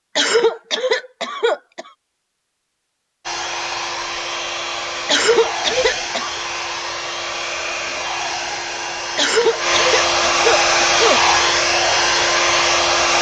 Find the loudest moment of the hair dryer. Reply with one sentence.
The loudest moment of the hair dryer is at 11 seconds.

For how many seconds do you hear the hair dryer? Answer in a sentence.
You can hear the hair dryer for 10 seconds altogether.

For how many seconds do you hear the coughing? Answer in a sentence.
The coughing can be heard for 5 seconds in total.